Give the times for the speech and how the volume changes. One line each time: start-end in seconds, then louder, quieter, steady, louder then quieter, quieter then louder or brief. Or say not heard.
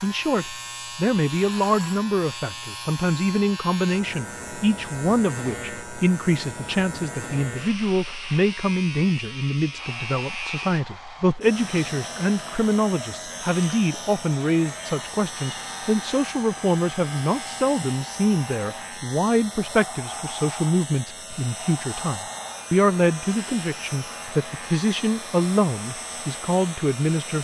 0.0-27.3 steady.